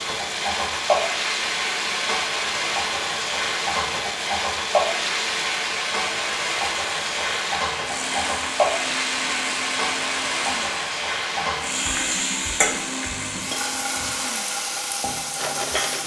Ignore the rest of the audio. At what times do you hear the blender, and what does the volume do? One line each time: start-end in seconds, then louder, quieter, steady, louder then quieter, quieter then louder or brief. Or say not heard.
0.0-16.0 steady.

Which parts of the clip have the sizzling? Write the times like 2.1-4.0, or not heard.
0.0-16.0.